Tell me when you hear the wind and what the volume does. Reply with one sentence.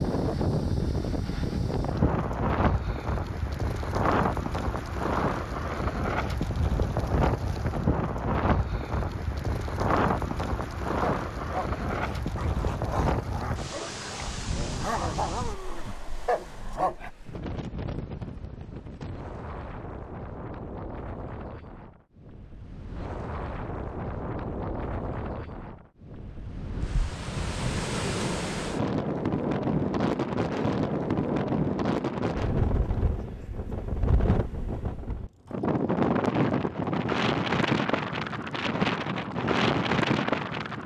The wind can be heard from 0.0 to 40.8 s, getting quieter then louder.